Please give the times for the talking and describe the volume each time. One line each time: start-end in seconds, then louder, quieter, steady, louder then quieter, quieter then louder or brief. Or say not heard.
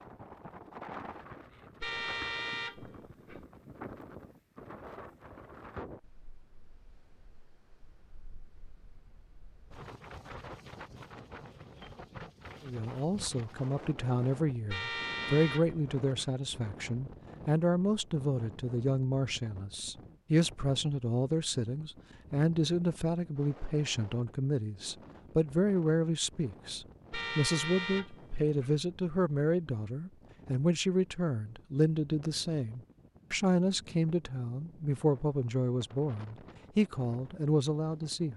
12.7-38.3 steady.